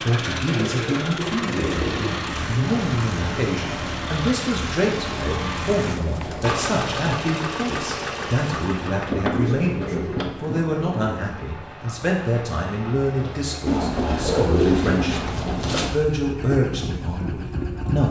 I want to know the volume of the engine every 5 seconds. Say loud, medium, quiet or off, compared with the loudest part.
loud, loud, medium, loud.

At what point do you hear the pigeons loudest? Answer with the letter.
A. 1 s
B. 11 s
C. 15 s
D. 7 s
C.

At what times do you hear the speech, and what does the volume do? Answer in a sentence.
You can hear the speech from 0.0 to 18.0 s, at a steady volume.